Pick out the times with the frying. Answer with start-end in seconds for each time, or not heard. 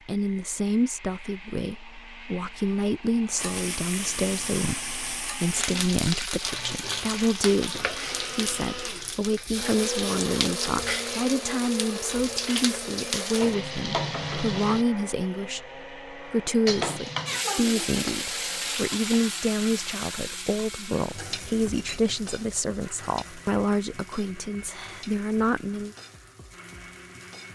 3.4-14.8, 16.6-27.5.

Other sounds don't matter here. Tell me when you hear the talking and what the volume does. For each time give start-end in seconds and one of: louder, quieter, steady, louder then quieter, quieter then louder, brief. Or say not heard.
0.1-25.9 steady.